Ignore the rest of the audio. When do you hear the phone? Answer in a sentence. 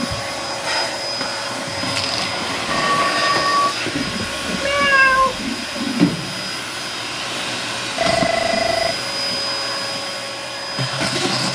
You can hear the phone from 2.6 to 3.8 s and from 8.0 to 8.9 s.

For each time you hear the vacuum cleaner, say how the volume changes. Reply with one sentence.
The vacuum cleaner can be heard from 0.0 to 11.5 s, at a steady volume.